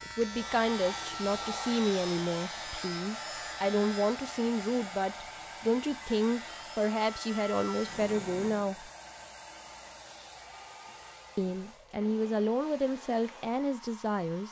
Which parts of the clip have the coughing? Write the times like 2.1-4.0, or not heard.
not heard.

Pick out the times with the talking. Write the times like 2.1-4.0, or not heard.
0.1-8.9, 11.3-14.4.